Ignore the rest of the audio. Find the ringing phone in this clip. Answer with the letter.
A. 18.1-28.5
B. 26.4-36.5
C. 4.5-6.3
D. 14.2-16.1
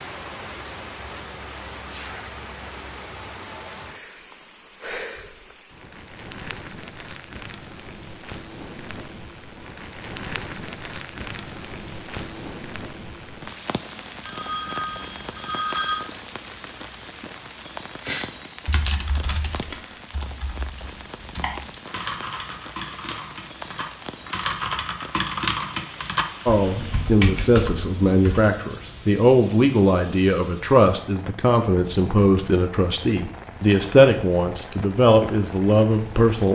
D.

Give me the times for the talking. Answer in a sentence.
The talking can be heard from 26.4 to 36.5 s.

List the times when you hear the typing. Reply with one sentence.
You can hear the typing from 18.1 to 28.5 s.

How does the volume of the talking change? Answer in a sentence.
The loudness of the talking stays about the same.